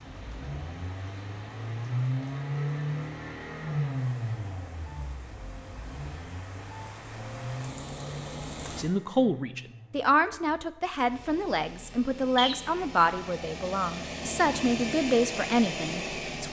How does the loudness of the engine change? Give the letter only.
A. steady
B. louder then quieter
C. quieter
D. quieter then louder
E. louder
D.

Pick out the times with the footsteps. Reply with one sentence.
You can't hear the footsteps here.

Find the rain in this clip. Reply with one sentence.
You can hear the rain from 0.0 to 8.9 s.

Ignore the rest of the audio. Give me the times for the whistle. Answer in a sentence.
The whistle can be heard from 12.3 to 12.8 s.